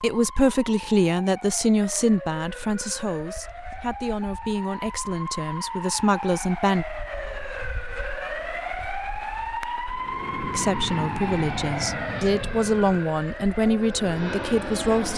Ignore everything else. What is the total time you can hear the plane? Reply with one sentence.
The plane can be heard for 5 seconds in total.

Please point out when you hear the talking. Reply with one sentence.
The talking can be heard from 0.0 to 6.8 s and from 10.5 to 15.1 s.